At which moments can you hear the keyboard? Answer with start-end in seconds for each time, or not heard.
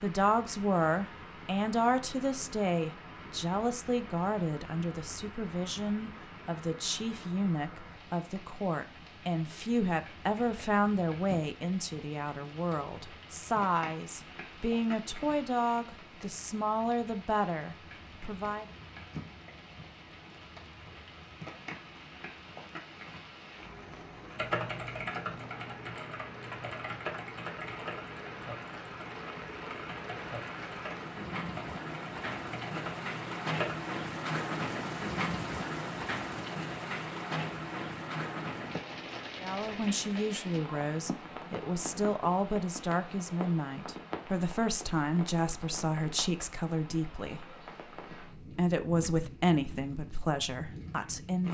24.3-33.8.